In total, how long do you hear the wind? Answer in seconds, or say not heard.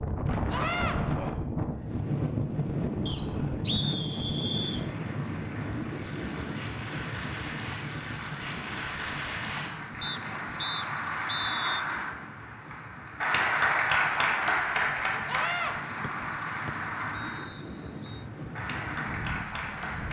20 s.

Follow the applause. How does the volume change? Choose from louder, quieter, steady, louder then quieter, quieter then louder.
louder then quieter.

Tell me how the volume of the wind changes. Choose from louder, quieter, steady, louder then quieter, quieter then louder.
quieter then louder.